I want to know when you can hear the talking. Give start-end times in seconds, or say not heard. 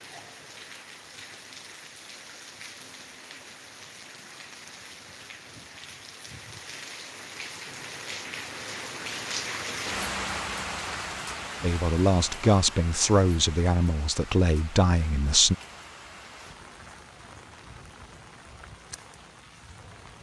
11.6-15.6.